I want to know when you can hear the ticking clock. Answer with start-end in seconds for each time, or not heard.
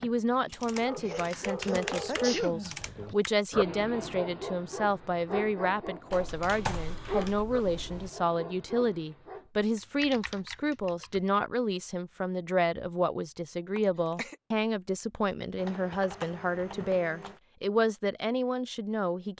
not heard.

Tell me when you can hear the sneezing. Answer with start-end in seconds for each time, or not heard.
1.0-2.7, 13.8-14.3.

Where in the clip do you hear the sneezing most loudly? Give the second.
2 s.